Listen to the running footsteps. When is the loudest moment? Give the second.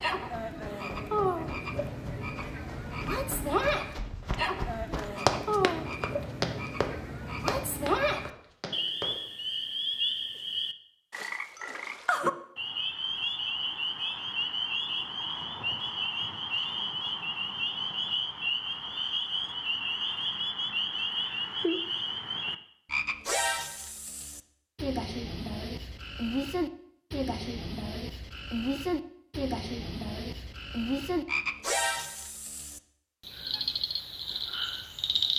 5 s.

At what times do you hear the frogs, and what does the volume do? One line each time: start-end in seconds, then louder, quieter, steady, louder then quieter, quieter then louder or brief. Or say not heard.
0.0-35.3 steady.